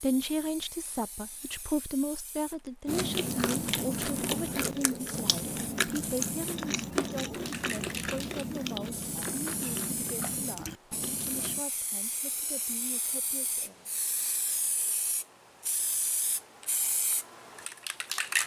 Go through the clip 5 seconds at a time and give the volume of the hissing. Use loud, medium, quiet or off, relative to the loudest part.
quiet, medium, medium, loud.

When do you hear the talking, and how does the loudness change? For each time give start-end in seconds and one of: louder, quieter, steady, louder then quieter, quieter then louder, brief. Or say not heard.
0.0-13.8 quieter.